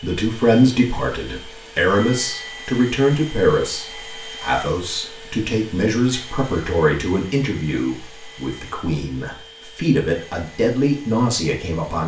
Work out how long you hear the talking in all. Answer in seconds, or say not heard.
12 s.